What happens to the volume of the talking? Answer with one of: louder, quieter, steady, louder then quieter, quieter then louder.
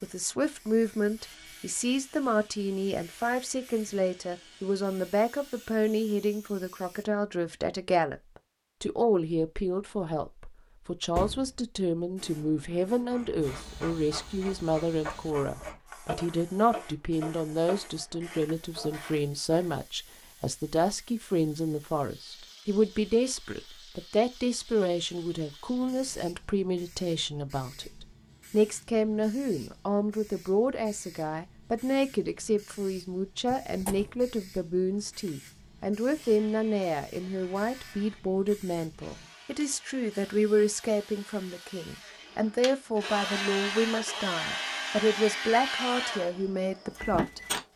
steady.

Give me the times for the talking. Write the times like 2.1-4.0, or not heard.
0.0-8.2, 8.8-47.7.